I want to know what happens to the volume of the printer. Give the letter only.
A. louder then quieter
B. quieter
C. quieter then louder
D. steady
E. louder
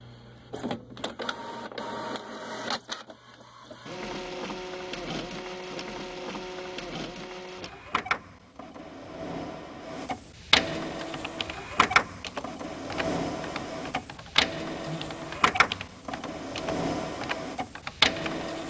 E.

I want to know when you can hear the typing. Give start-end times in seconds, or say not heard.
10.8-18.5.